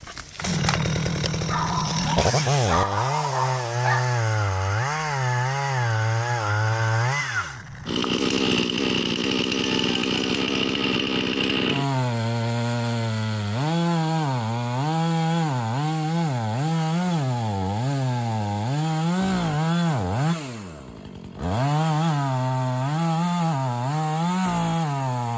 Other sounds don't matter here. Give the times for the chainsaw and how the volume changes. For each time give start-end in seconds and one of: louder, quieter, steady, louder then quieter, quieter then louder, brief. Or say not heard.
0.0-25.3 steady.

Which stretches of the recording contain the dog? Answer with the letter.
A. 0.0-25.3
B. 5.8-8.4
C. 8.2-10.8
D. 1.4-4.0
D.